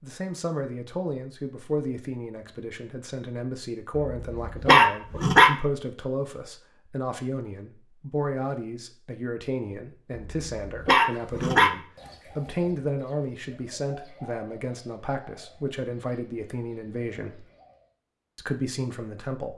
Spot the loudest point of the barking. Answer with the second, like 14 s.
5 s.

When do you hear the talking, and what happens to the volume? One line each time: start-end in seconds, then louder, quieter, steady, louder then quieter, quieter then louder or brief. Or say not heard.
0.0-17.4 steady
18.4-19.5 brief.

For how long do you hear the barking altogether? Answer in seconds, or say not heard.
3 s.